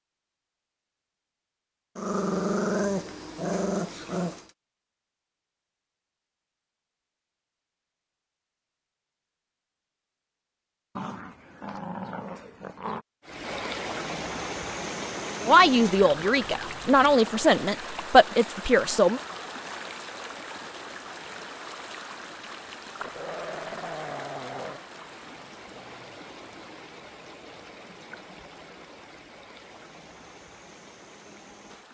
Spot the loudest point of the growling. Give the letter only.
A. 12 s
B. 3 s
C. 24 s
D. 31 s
B.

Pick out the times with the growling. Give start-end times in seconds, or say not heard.
1.9-4.5, 10.9-13.1, 23.0-24.8.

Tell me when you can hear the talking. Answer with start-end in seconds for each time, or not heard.
15.4-19.2.